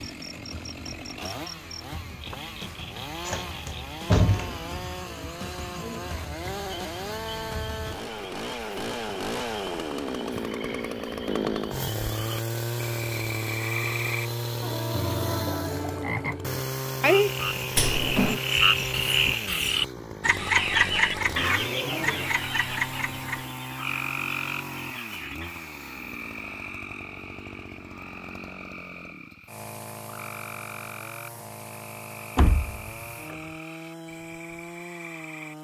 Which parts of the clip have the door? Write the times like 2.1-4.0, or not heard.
3.2-4.7, 17.8-18.4, 32.4-33.4.